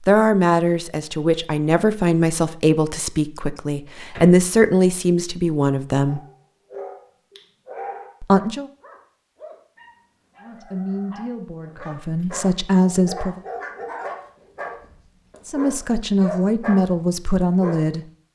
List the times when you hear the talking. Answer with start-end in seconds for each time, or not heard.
0.0-6.2, 8.2-8.7, 10.4-13.4, 15.4-18.1.